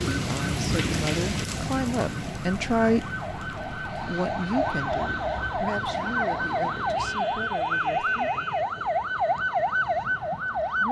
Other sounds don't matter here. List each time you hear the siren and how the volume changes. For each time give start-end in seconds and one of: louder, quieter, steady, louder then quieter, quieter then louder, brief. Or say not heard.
0.0-10.8 louder.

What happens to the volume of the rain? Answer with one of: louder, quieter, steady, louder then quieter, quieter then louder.
quieter.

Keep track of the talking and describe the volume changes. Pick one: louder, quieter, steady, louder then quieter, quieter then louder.
louder then quieter.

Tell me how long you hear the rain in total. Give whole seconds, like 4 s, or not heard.
7 s.